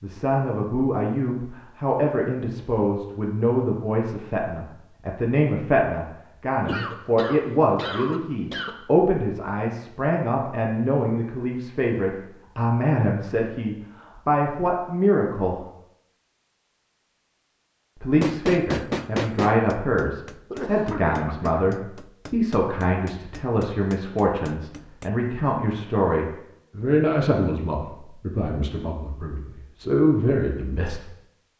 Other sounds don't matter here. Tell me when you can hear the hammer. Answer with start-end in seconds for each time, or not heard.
18.2-25.1.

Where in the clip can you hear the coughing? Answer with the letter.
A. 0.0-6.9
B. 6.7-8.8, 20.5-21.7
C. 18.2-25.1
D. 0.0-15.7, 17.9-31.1
B.